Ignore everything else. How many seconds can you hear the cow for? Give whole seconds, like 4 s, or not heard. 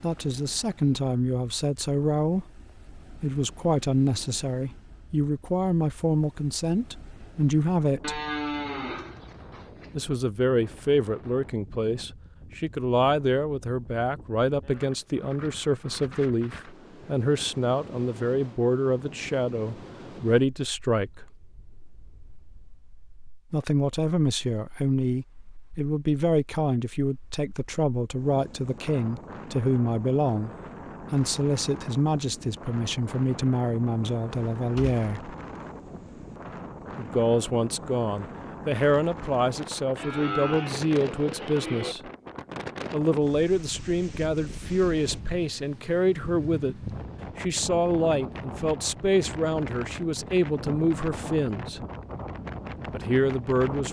4 s.